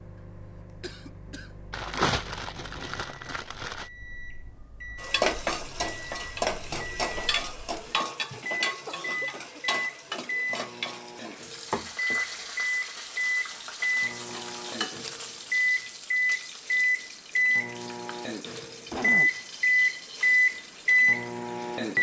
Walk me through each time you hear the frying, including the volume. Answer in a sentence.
The frying can be heard from 5.0 to 21.9 s, getting quieter.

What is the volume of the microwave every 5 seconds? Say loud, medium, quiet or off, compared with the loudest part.
quiet, quiet, medium, loud, loud.